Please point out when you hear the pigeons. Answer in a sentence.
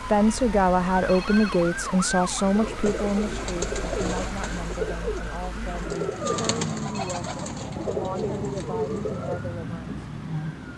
You can hear the pigeons from 2.5 to 9.5 s.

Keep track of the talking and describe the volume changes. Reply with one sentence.
The volume of the talking goes down.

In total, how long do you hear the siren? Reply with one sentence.
The siren can be heard for 11 seconds in total.